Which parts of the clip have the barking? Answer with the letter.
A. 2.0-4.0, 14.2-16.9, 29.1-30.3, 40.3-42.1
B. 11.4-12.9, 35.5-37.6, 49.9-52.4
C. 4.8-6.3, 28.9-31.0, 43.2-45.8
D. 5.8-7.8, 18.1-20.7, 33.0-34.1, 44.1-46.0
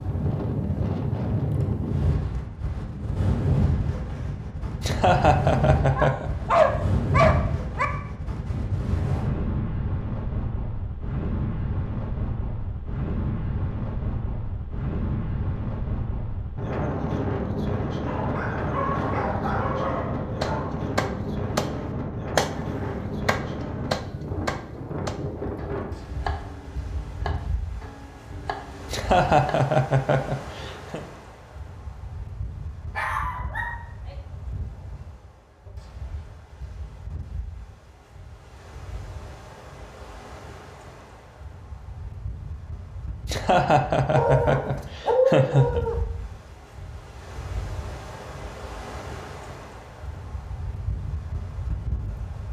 D.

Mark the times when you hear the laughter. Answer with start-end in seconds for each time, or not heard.
4.8-6.3, 28.9-31.0, 43.2-45.8.